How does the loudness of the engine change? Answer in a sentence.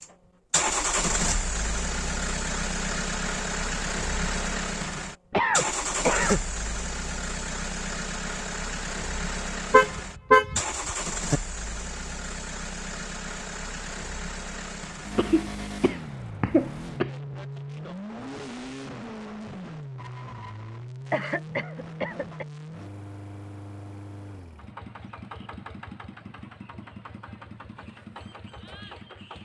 The volume of the engine goes down.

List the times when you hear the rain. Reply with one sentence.
You can't hear the rain here.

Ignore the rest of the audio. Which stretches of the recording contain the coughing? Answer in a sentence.
You can hear the coughing from 5.3 to 6.4 s, from 15.2 to 17.1 s and from 21.1 to 22.4 s.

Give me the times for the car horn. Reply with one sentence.
The car horn can be heard from 9.7 to 11.4 s.